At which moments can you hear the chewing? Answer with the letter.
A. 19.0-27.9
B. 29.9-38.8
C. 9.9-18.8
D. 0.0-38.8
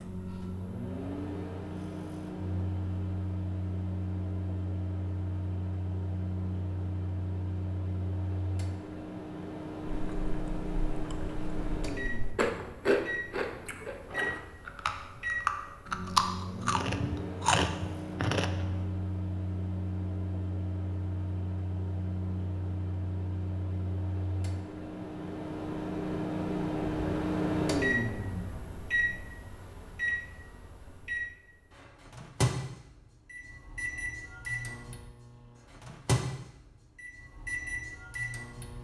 C.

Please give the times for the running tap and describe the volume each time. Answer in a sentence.
You can't hear the running tap here.